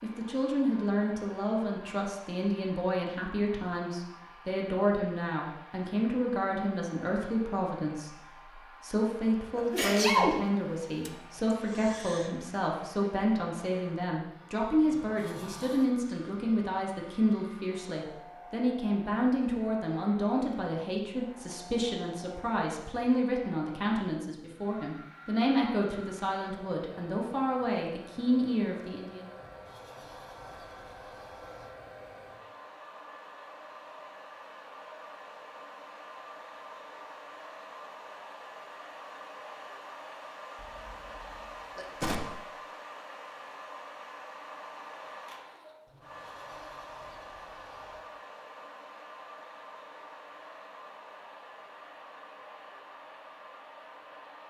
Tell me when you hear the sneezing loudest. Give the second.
10 s.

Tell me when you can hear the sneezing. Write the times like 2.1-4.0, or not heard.
9.6-12.3, 40.6-42.1.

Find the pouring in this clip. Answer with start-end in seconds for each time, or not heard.
not heard.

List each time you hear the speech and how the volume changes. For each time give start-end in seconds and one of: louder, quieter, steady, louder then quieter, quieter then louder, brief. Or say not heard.
0.0-29.2 steady.